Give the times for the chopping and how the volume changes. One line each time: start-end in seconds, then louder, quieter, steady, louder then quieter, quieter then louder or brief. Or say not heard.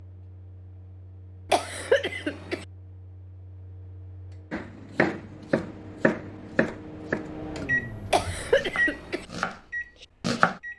4.5-10.6 quieter then louder.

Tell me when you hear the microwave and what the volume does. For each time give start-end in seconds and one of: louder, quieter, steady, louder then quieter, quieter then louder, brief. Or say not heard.
0.0-10.7 louder.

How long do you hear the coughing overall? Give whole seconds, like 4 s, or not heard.
2 s.